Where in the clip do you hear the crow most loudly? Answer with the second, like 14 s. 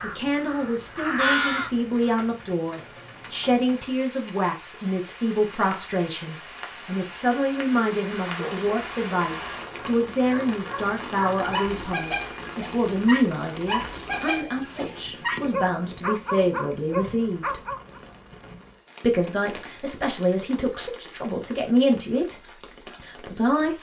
1 s.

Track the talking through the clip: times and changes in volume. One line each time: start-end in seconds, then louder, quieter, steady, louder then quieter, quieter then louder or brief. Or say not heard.
0.0-17.6 steady
19.0-23.7 louder then quieter.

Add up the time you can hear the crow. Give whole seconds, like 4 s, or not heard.
2 s.